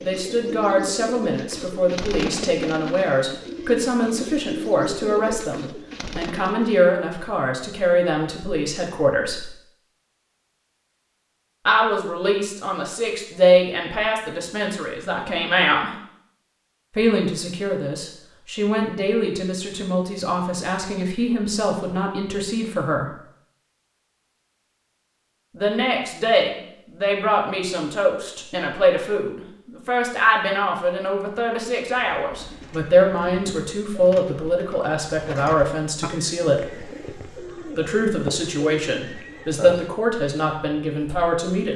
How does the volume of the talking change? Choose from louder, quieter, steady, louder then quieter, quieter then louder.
steady.